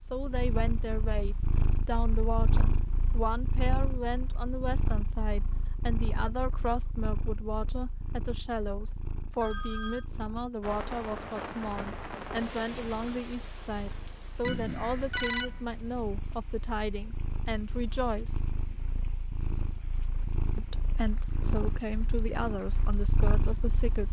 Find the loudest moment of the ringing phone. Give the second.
15 s.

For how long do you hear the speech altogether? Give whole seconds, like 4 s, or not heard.
22 s.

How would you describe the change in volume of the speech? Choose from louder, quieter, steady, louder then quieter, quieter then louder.
steady.